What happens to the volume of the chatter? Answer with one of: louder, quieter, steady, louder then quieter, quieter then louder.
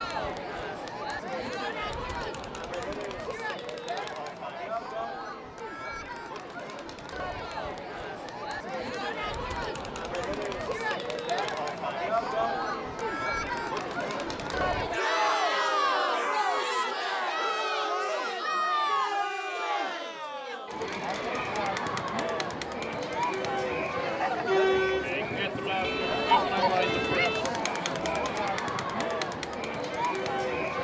louder.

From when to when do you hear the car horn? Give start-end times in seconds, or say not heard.
25.8-27.6.